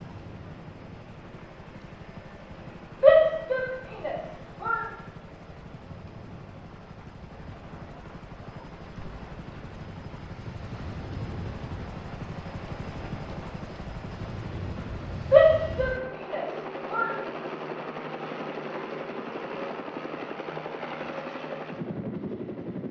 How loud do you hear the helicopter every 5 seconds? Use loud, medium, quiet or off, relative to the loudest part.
medium, medium, loud, loud, loud.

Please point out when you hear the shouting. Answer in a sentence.
The shouting can be heard from 3.0 to 4.8 s and from 15.3 to 17.1 s.